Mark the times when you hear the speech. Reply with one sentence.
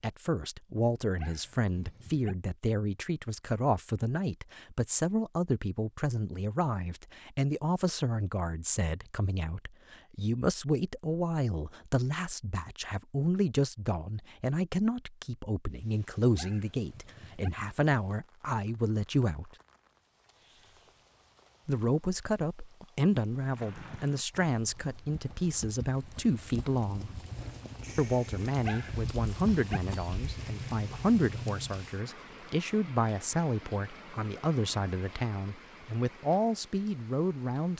The speech can be heard from 0.0 to 19.5 s, from 21.6 to 27.2 s and from 27.9 to 37.7 s.